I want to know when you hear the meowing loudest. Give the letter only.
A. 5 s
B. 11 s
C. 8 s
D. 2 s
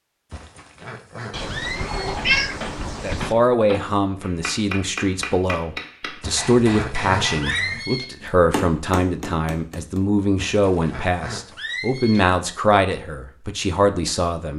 D.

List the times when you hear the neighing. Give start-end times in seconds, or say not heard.
0.3-2.1, 6.2-8.1, 10.3-12.2.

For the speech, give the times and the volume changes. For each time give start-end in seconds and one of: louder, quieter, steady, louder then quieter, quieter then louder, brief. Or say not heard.
3.0-14.5 steady.